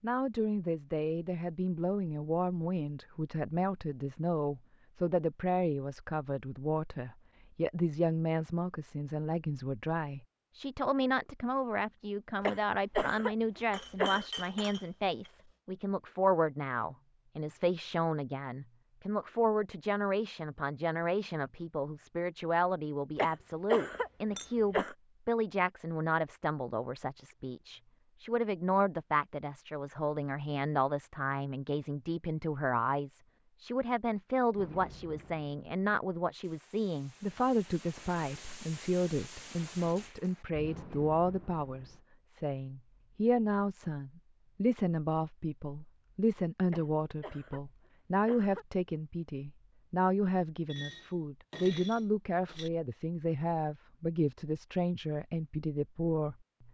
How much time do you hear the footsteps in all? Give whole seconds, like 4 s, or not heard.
not heard.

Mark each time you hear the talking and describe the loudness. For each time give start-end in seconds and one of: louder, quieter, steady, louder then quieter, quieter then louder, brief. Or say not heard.
0.0-56.6 steady.